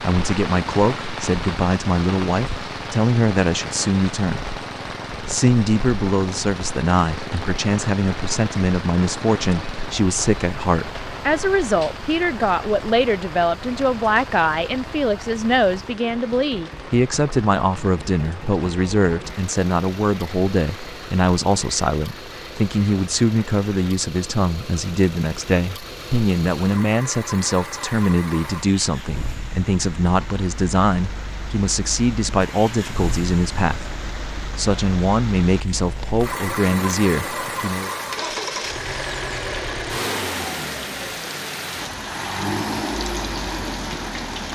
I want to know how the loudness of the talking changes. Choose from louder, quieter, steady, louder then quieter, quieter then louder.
steady.